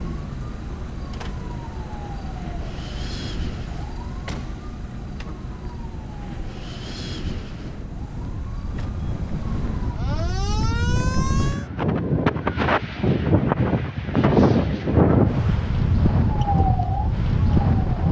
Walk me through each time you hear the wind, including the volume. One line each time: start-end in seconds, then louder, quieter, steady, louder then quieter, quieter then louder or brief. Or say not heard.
0.0-18.0 louder.